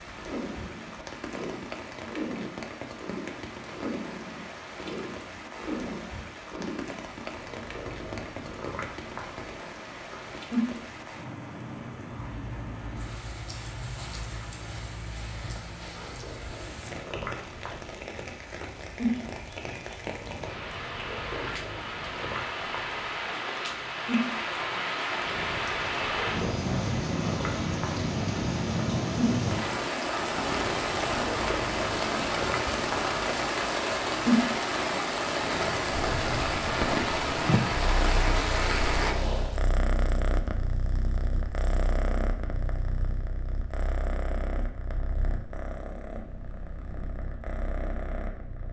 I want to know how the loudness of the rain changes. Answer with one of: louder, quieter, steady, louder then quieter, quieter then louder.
louder.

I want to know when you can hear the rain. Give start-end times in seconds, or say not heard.
0.0-39.6.